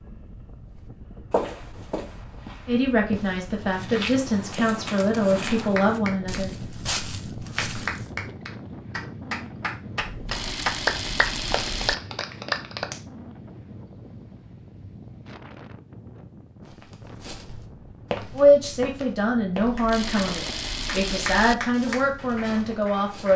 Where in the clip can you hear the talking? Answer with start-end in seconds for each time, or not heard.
2.6-6.5, 18.4-23.3.